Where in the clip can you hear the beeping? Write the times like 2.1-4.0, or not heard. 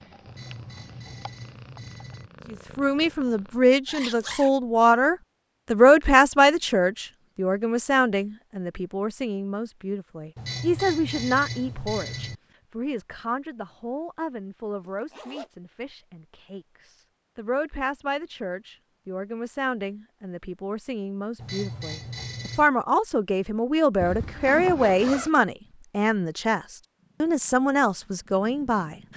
0.2-2.3, 10.3-12.4, 21.4-22.7.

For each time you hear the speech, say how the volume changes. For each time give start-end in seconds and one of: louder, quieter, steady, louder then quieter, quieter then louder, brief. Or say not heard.
2.5-26.6 quieter then louder
27.2-28.9 brief.